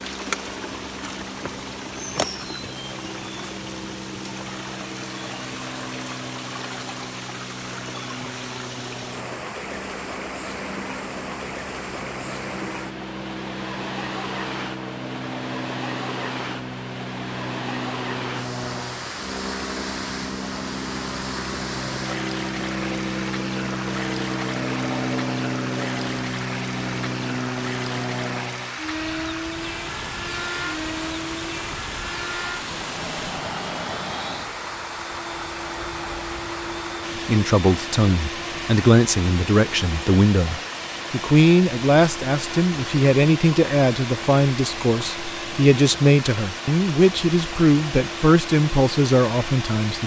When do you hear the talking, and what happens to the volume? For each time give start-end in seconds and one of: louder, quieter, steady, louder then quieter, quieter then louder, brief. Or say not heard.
37.2-50.0 steady.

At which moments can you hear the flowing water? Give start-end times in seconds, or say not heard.
0.0-50.0.